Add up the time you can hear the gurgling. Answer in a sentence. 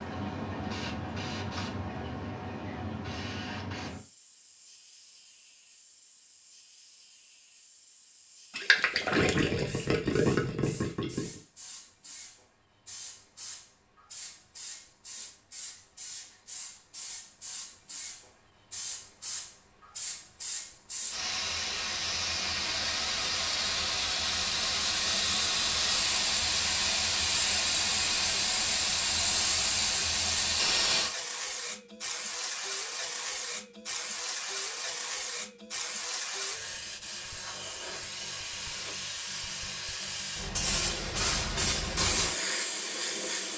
The gurgling can be heard for 3 seconds in total.